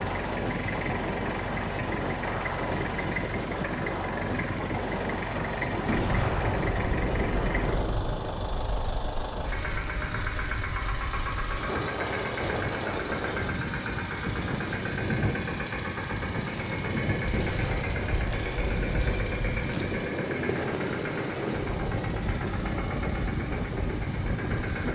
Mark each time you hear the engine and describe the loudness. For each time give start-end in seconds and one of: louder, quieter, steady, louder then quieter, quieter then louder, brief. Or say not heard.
0.0-24.8 steady.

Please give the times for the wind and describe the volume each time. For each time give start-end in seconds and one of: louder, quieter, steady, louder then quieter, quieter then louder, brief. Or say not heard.
0.0-24.8 steady.